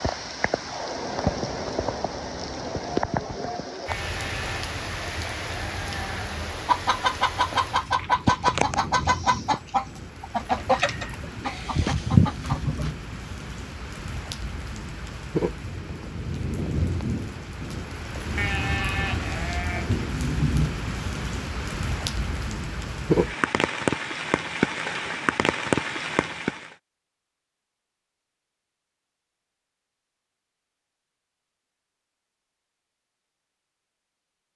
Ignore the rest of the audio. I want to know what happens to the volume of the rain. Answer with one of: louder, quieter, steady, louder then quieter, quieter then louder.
quieter then louder.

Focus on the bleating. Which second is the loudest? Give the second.
19 s.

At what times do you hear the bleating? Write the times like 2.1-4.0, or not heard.
3.9-6.6, 18.4-19.9.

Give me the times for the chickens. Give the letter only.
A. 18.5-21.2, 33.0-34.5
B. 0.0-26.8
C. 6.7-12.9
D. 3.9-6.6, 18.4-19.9
C.